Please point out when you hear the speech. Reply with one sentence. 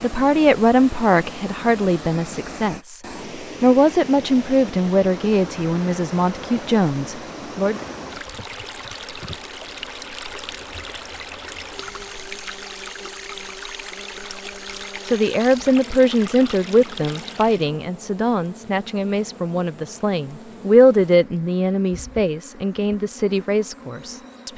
You can hear the speech from 0.0 to 3.0 s, from 3.6 to 7.8 s and from 15.1 to 24.5 s.